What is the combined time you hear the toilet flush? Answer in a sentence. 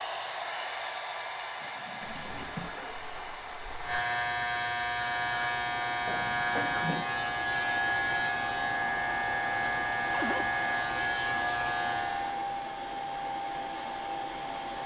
You can hear the toilet flush for 2 seconds altogether.